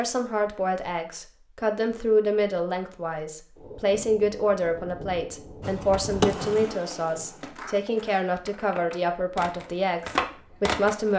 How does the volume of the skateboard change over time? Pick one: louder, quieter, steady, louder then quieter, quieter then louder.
quieter then louder.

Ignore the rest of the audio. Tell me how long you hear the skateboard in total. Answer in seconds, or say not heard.
5 s.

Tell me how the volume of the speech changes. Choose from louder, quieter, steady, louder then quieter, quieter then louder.
steady.